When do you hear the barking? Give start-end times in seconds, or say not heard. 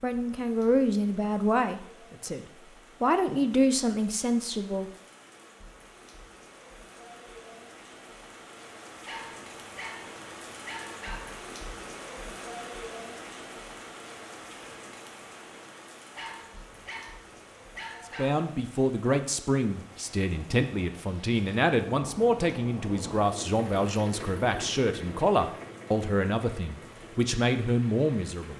9.1-11.4, 16.1-18.4.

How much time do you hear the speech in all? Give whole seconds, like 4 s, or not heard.
15 s.